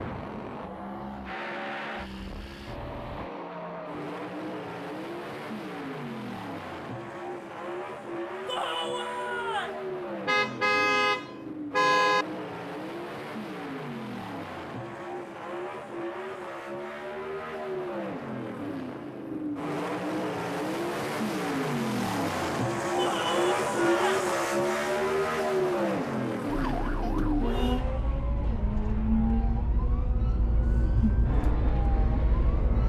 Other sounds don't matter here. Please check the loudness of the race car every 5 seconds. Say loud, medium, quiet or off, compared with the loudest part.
medium, medium, medium, medium, loud, loud, medium.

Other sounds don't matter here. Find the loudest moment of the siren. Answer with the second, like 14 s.
31 s.